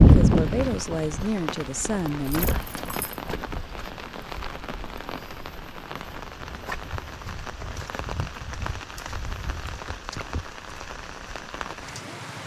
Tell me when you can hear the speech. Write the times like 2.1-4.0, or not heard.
0.1-2.5.